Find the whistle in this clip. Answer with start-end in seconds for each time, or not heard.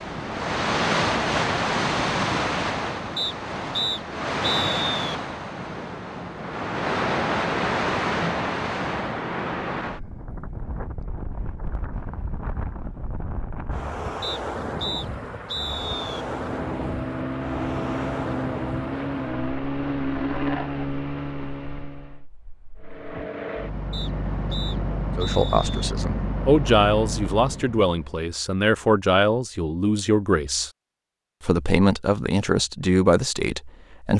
3.1-5.0, 14.2-16.2, 23.9-25.9.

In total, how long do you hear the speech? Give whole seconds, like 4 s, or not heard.
8 s.